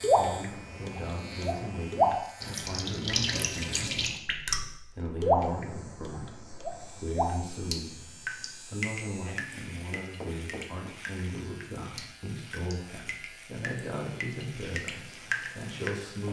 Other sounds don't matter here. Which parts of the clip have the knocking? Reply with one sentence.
The knocking can be heard from 10.0 to 10.9 s.